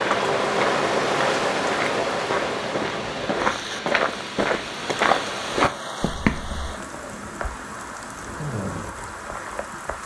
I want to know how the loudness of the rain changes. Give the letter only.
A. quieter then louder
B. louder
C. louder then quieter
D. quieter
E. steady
D.